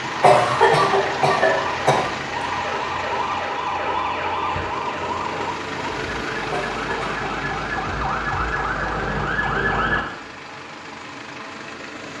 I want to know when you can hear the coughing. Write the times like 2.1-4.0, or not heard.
0.2-2.1, 6.5-7.3.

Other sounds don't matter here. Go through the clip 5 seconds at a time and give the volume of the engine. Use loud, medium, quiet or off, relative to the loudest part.
loud, loud, medium.